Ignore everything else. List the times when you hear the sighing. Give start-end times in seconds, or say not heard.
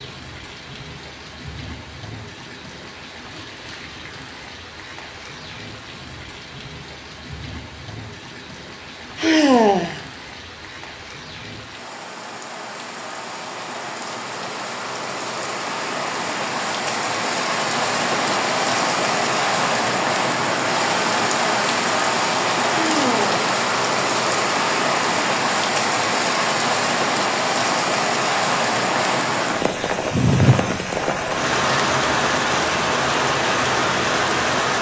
9.2-10.0, 22.7-23.4.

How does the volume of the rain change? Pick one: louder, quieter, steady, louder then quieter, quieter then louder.
louder.